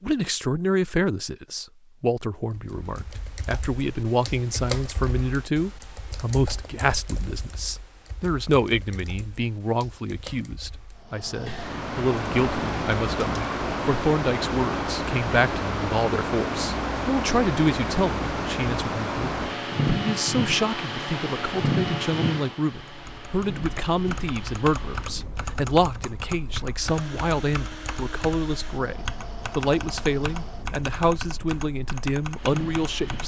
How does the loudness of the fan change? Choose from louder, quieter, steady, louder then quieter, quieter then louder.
quieter.